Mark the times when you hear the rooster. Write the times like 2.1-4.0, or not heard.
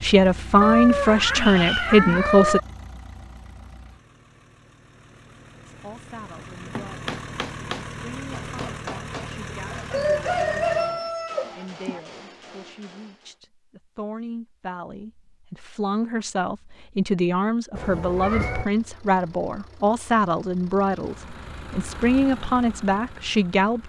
9.7-12.0.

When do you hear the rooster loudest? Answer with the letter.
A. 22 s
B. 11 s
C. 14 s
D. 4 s
B.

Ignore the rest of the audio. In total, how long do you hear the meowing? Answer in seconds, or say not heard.
3 s.